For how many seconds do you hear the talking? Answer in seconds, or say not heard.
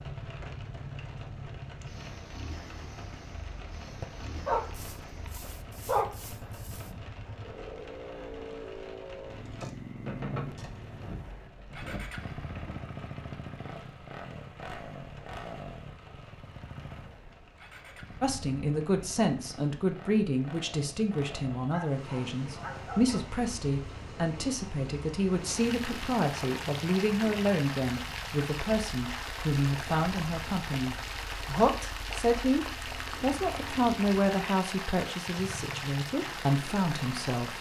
19 s.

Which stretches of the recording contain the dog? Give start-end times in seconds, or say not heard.
4.0-6.9, 21.5-23.2.